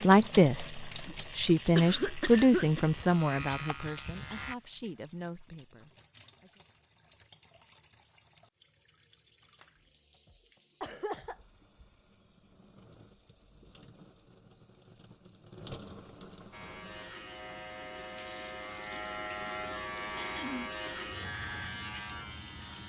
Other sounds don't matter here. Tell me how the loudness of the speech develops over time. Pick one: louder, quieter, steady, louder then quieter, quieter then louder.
quieter.